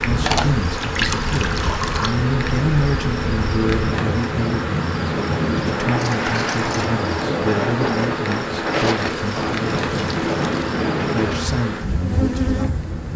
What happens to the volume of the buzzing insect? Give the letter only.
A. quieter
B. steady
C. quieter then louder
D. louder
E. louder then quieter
B.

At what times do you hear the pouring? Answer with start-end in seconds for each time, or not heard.
0.2-2.1, 6.0-6.9, 8.9-10.8.